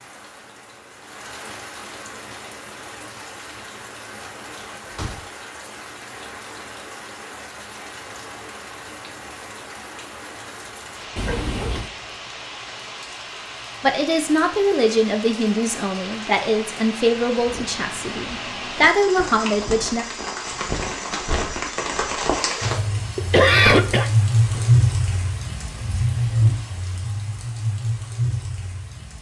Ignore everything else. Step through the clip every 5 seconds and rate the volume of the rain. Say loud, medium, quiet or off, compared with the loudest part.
quiet, quiet, quiet, medium, loud, loud.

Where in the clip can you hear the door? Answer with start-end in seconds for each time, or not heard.
4.8-5.3, 11.2-11.9, 23.6-24.7.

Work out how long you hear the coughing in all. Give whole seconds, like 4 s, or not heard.
2 s.